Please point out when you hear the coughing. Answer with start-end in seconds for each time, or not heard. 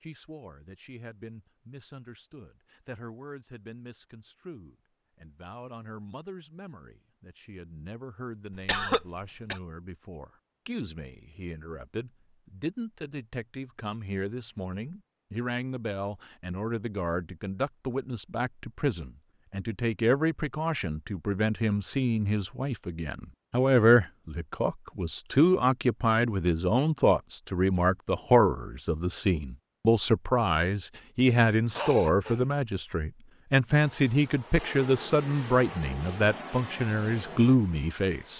8.6-9.6, 31.8-32.5.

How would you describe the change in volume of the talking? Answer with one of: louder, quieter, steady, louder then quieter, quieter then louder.
louder.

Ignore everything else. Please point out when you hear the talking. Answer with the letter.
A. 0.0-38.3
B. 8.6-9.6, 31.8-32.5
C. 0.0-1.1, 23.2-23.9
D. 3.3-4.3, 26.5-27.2
A.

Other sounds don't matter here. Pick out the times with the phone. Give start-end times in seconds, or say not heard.
not heard.